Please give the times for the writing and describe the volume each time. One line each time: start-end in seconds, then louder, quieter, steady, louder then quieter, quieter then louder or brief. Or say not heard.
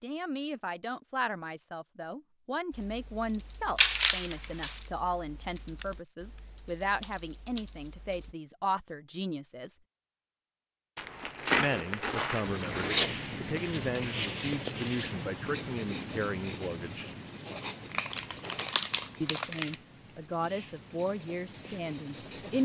12.4-22.6 quieter.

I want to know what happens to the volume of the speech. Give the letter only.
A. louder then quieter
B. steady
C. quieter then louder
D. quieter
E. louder
B.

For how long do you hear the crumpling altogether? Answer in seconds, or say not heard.
5 s.